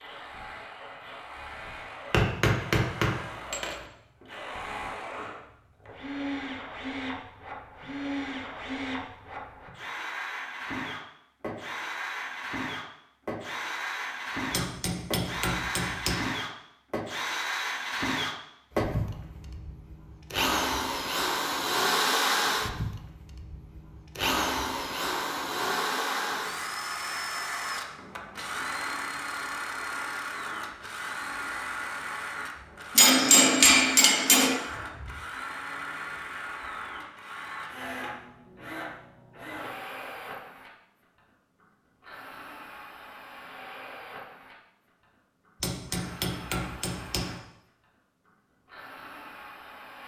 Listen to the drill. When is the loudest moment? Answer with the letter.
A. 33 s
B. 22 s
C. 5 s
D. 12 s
B.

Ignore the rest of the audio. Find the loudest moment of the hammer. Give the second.
33 s.